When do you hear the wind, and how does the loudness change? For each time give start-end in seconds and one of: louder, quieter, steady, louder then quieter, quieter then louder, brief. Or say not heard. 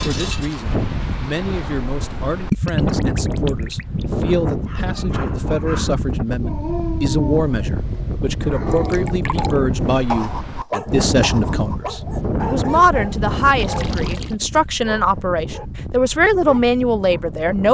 0.0-17.6 quieter.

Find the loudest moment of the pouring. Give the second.
3 s.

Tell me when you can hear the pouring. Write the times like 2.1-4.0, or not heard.
2.5-4.2, 8.7-9.6, 13.6-14.3.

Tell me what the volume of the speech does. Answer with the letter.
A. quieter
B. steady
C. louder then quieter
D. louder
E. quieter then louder
D.